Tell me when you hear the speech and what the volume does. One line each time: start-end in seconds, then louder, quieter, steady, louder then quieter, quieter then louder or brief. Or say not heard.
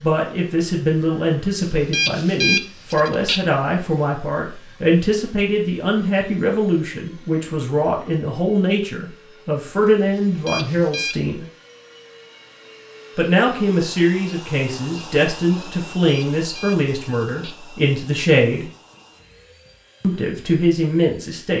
0.0-11.4 steady
13.2-18.6 steady
20.0-21.5 brief.